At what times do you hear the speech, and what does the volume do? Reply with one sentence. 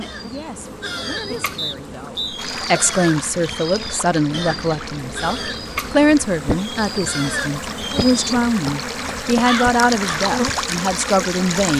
The speech can be heard from 0.0 to 11.7 s, getting louder.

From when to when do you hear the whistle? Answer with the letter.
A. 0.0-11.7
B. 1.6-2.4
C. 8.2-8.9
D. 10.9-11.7
B.